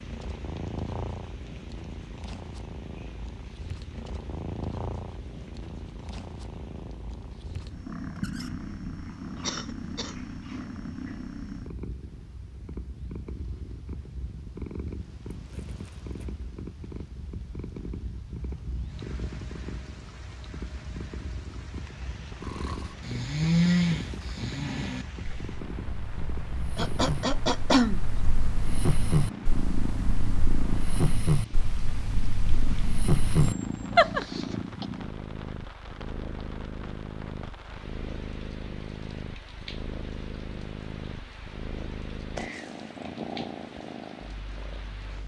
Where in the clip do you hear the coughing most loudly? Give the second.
28 s.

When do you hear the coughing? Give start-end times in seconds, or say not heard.
9.4-10.2, 26.8-28.1, 34.0-34.9.